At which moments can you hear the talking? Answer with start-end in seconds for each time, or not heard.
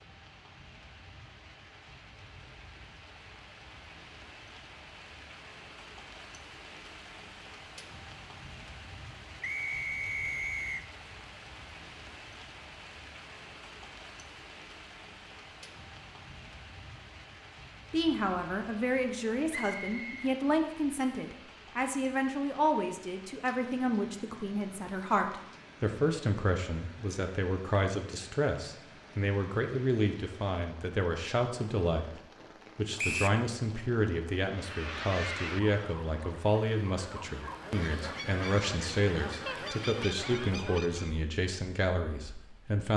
17.9-42.9.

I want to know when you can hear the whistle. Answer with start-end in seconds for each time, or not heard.
9.4-10.8, 19.5-20.2, 33.0-33.4.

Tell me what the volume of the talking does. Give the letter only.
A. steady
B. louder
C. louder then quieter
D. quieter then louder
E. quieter
A.